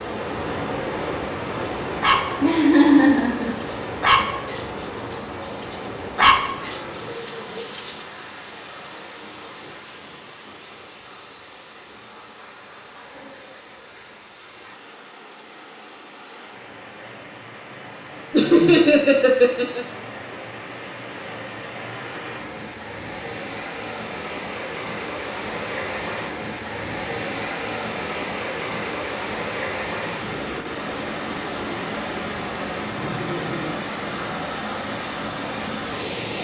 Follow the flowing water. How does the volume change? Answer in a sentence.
The volume of the flowing water goes down, then up.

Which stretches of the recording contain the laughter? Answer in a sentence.
You can hear the laughter from 2.4 to 3.5 s, from 18.3 to 19.9 s and from 32.9 to 33.8 s.